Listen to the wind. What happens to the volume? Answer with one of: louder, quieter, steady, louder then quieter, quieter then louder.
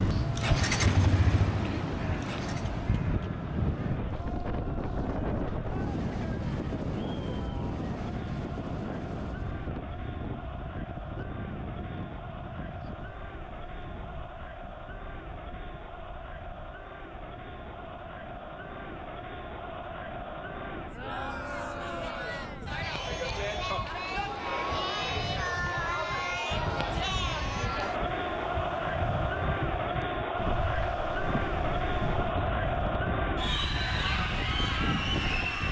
quieter then louder.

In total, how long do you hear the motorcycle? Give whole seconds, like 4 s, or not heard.
3 s.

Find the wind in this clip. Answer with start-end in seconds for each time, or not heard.
0.0-35.6.